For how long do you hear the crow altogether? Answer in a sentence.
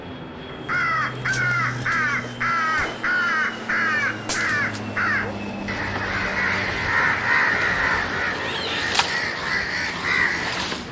You can hear the crow for 10 seconds altogether.